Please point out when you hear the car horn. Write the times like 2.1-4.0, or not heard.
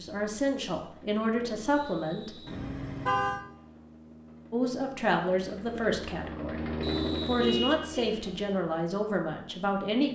2.5-3.4, 7.3-8.2.